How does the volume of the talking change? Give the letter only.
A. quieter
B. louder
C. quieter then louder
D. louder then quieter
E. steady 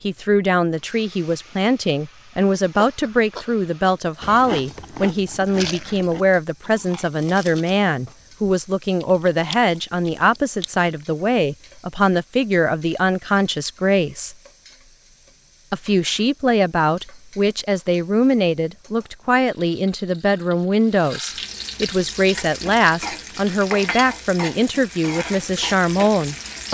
E.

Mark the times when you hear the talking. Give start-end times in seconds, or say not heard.
0.0-14.3, 15.7-26.6.